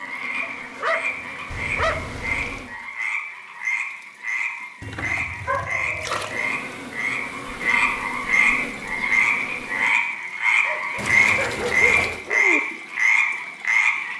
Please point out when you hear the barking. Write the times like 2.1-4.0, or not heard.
0.4-2.1, 5.5-6.5, 10.7-12.6.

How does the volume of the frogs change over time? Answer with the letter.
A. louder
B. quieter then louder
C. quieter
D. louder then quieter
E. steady
A.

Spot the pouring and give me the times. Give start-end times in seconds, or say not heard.
1.5-2.6, 4.8-6.3, 10.9-12.2.